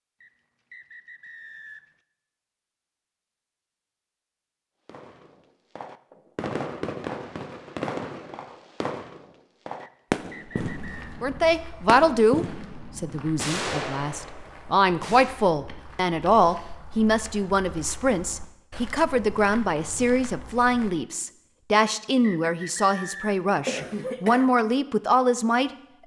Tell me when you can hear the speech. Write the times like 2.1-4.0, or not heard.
11.2-26.0.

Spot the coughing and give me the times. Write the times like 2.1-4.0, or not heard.
23.4-24.5.